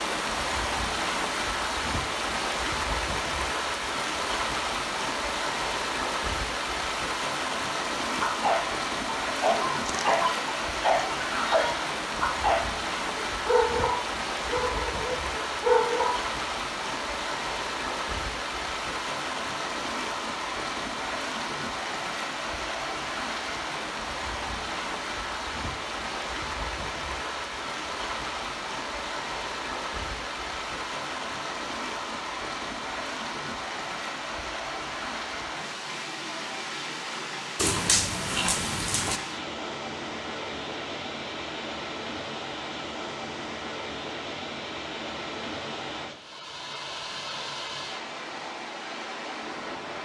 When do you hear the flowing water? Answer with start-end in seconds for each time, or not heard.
0.0-50.0.